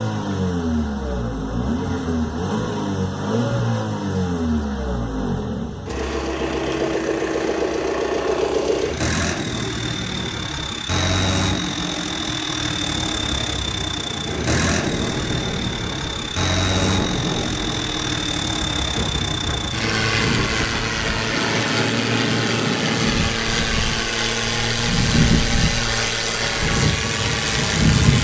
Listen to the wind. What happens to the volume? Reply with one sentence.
The volume of the wind goes up.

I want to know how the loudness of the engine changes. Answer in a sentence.
The volume of the engine stays about the same.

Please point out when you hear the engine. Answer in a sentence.
The engine can be heard from 0.0 to 28.1 s.